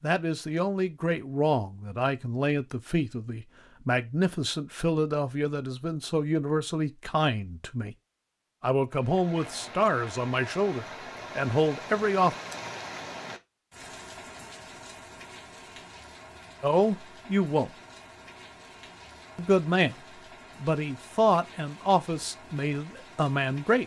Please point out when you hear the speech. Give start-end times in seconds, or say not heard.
0.0-8.0, 8.6-12.3, 16.6-17.7, 19.4-19.9, 20.6-23.8.